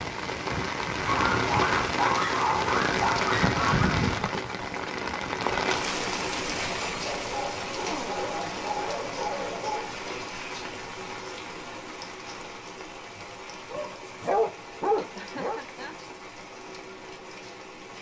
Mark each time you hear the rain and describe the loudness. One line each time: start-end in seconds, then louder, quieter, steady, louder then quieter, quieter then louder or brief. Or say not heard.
0.0-17.9 quieter.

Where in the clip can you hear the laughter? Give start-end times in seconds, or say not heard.
15.2-16.0.